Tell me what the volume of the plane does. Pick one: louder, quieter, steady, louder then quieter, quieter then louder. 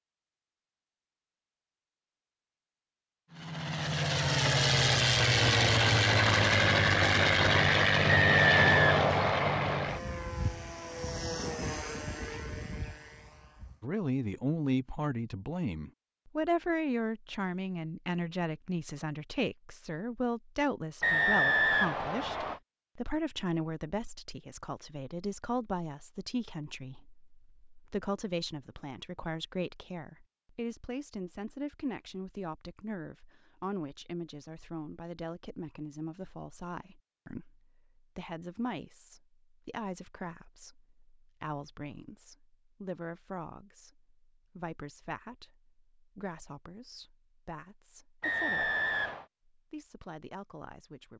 quieter.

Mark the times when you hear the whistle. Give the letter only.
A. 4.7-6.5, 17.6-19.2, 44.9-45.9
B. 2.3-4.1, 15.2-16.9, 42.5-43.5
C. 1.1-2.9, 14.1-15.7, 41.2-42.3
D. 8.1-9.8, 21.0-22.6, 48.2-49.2
D.